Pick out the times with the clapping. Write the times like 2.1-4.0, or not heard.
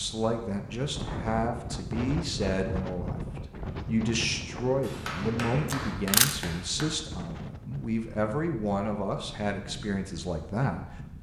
4.8-6.8.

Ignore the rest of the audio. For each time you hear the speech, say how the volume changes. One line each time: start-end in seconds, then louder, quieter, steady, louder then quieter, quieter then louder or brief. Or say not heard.
0.0-11.1 steady.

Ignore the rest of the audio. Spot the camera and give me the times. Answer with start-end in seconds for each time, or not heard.
5.7-6.3.